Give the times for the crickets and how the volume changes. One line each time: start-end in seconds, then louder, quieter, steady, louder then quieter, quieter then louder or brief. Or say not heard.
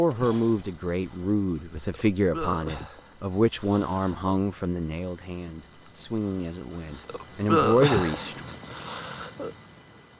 0.0-10.1 louder.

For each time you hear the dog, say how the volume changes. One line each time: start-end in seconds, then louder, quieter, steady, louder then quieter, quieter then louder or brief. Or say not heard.
not heard.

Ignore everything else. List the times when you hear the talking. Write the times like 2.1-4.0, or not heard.
0.0-8.4.